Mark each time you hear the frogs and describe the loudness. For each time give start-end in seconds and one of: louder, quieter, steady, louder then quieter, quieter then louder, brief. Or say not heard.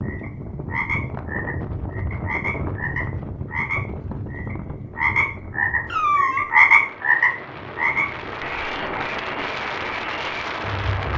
0.0-11.1 louder then quieter.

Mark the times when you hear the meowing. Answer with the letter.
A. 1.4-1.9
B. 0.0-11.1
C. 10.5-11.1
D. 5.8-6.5
D.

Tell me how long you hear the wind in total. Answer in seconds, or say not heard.
11 s.